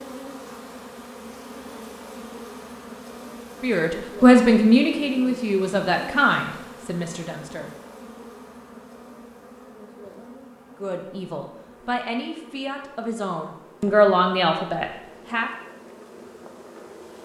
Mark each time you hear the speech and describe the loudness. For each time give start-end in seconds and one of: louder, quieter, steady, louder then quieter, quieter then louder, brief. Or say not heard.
3.6-7.7 quieter
10.8-15.5 louder then quieter.